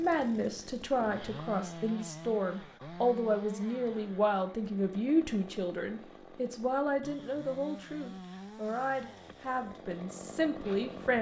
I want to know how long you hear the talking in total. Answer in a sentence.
The talking can be heard for 11 seconds in total.